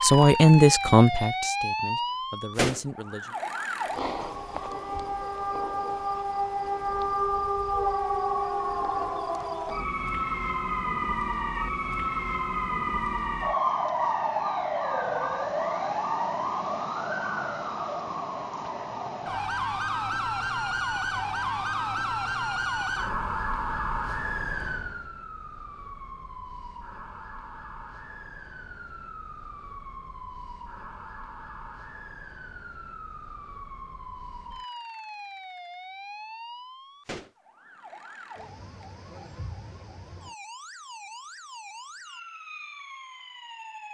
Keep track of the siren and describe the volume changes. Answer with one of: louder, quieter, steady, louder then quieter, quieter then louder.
quieter.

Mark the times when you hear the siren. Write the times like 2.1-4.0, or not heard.
0.0-43.8.